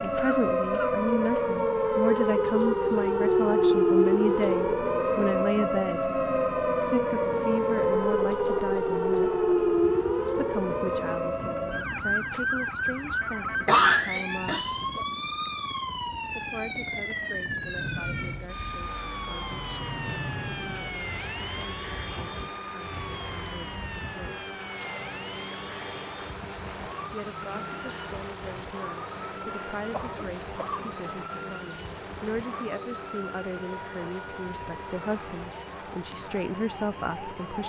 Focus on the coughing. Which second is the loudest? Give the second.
14 s.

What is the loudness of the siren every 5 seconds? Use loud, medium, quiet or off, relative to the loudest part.
loud, loud, medium, medium, quiet, quiet, quiet, quiet.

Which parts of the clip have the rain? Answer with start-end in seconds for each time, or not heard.
17.4-37.6.